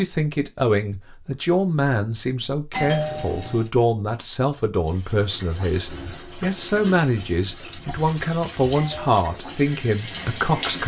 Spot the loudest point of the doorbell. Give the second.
3 s.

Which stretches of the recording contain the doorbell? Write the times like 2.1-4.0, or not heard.
2.7-3.7, 8.7-9.2.